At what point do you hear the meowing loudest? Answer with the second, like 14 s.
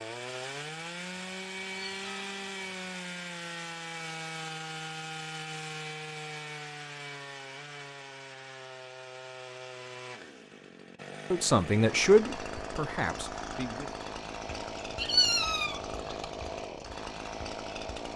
15 s.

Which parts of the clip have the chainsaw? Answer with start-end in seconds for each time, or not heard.
0.0-18.1.